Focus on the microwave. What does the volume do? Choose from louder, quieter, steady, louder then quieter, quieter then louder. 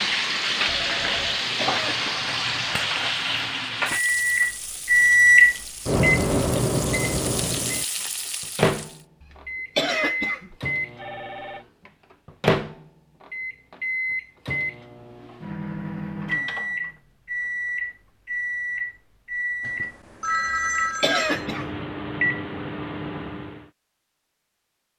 quieter.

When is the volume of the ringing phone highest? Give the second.
20 s.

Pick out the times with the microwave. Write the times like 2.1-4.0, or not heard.
3.9-23.7.